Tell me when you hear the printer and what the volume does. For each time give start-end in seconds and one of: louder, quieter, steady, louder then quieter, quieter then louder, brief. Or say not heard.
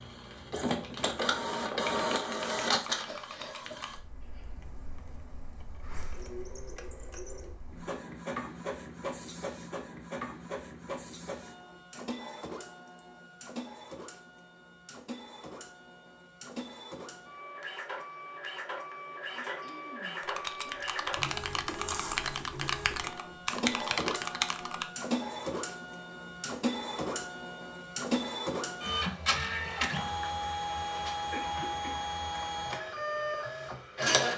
0.0-34.3 quieter then louder.